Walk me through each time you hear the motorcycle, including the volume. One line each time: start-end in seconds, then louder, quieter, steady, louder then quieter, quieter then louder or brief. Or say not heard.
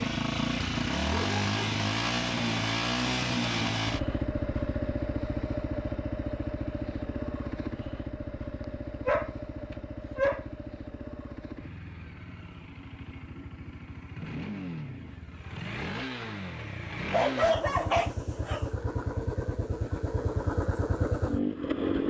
0.0-22.0 quieter then louder.